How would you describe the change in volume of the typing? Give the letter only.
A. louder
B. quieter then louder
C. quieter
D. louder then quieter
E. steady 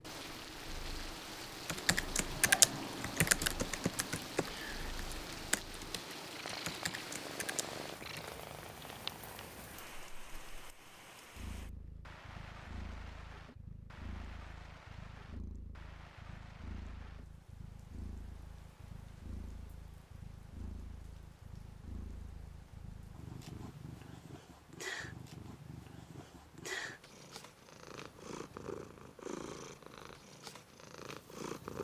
C.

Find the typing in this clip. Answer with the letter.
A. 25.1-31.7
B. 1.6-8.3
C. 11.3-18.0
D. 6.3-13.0
B.